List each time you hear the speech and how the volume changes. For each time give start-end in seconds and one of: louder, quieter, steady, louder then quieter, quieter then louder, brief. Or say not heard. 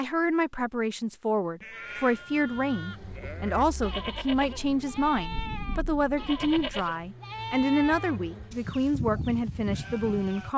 0.0-10.5 steady.